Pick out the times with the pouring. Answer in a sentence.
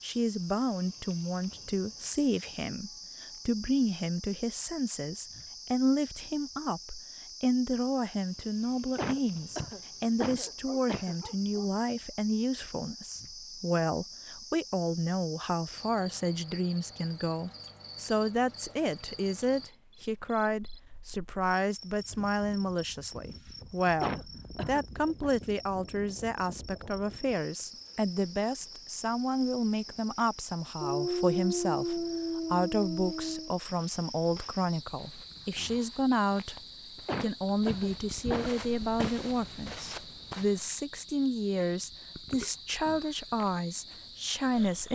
You can't hear the pouring here.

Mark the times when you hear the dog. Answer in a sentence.
The dog can be heard from 10.4 to 11.7 s and from 30.8 to 33.5 s.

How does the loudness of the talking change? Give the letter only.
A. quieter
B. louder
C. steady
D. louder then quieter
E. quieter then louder
C.